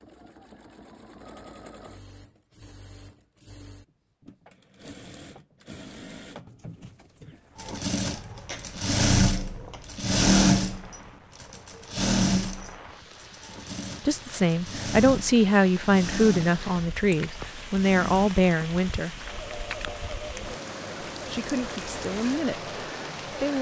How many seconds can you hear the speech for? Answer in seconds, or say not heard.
7 s.